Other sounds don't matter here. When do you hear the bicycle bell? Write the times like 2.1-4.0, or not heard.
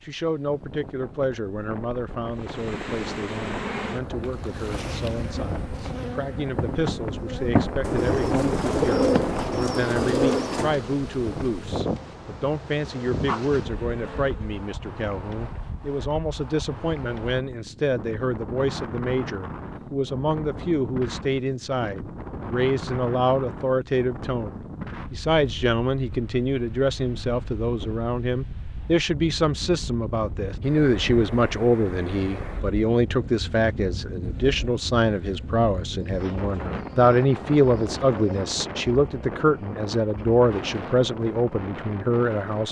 not heard.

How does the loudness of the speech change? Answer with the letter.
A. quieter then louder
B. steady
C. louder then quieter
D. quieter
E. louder
E.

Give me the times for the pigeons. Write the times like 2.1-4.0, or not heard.
7.8-10.8, 36.0-38.5.